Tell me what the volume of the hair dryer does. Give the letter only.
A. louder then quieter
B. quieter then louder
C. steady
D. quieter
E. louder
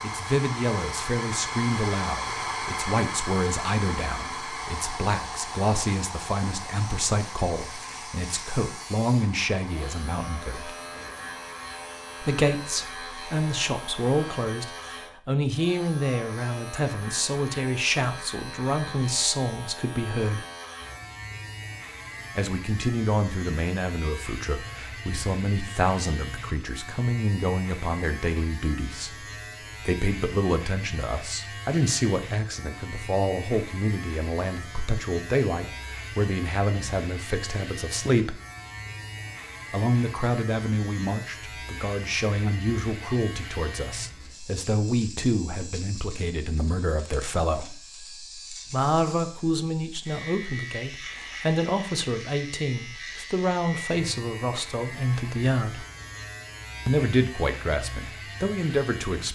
D.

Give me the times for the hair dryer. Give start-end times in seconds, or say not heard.
0.0-14.4.